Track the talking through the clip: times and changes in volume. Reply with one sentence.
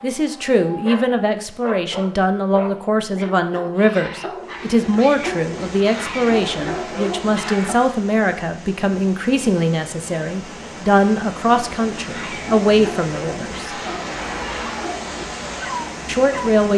You can hear the talking from 0.0 to 13.8 s, at a steady volume; and briefly from 16.1 to 16.7 s.